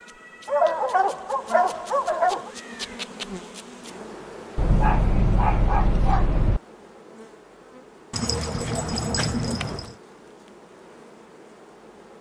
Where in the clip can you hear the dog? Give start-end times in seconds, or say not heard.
0.5-2.5, 4.5-6.6, 8.1-9.9.